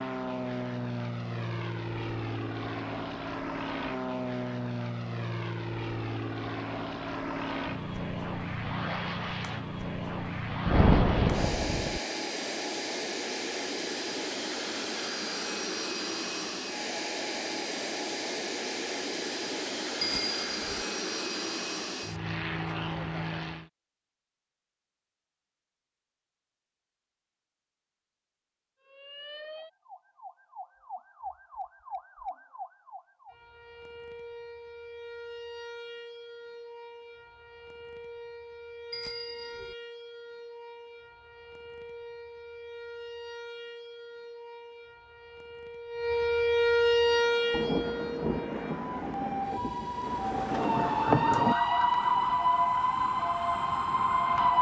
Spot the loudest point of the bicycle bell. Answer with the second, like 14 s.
20 s.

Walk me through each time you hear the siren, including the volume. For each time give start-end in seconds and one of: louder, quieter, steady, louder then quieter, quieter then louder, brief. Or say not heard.
28.9-54.5 louder.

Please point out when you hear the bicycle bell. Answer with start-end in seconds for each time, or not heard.
20.0-20.9, 38.9-39.8.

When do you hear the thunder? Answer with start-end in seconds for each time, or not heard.
10.7-12.0, 47.5-51.5.